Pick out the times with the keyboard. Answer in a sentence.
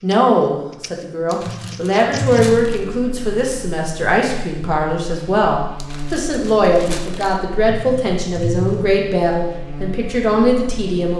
You can hear the keyboard from 1.4 to 2.6 s and from 7.6 to 8.9 s.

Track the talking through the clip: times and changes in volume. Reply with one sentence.
The talking can be heard from 0.0 to 11.1 s, at a steady volume.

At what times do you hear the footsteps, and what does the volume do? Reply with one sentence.
The footsteps can't be heard in this clip.